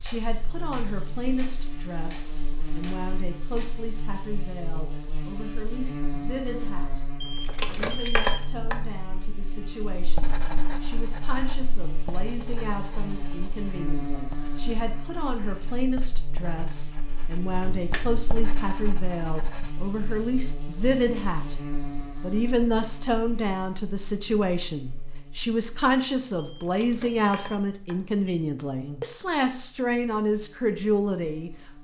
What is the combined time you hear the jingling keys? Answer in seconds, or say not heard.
4 s.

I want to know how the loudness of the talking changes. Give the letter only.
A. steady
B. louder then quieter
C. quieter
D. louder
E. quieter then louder
D.